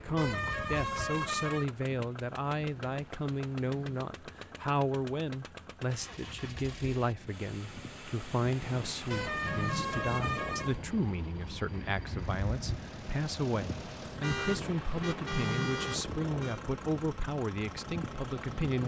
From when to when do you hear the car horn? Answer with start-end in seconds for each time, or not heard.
0.1-1.6, 9.1-10.8, 14.2-16.6.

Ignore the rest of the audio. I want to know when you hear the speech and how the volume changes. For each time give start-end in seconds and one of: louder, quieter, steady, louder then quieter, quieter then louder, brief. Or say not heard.
0.0-18.8 steady.